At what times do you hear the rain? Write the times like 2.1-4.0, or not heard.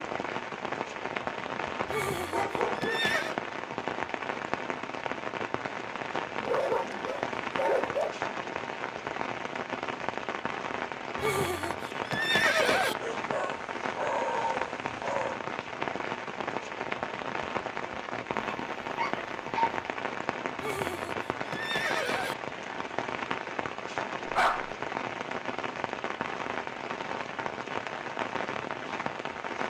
0.0-29.6.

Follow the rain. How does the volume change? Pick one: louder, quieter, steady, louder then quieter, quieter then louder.
steady.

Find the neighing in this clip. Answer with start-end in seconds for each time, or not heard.
1.9-3.4, 11.2-12.9, 20.6-22.4.